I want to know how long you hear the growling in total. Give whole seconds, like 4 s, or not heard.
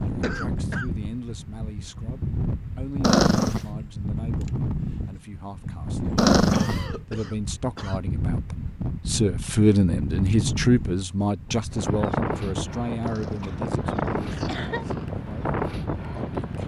3 s.